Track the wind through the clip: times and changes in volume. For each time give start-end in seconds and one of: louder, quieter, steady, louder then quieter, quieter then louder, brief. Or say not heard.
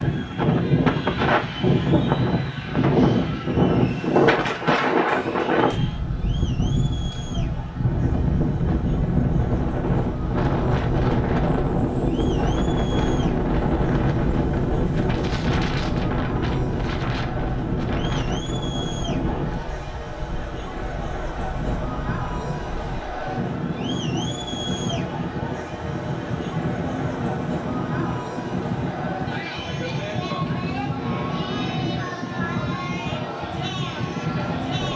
0.0-34.9 quieter.